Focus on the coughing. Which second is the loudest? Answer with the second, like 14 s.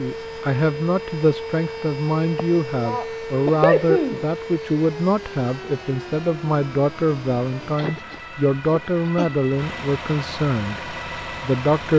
4 s.